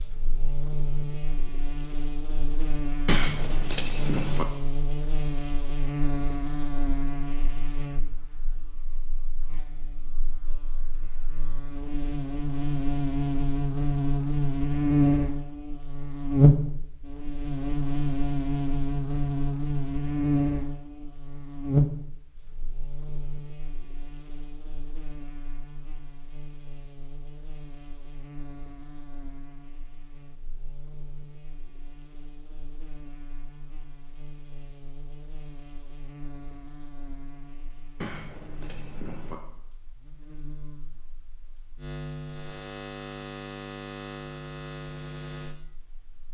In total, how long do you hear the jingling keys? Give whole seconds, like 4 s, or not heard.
3 s.